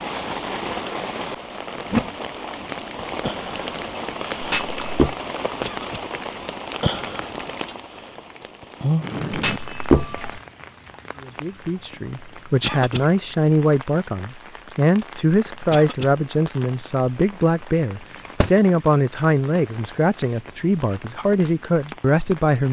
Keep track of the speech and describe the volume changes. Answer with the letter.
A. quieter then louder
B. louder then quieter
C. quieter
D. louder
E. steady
E.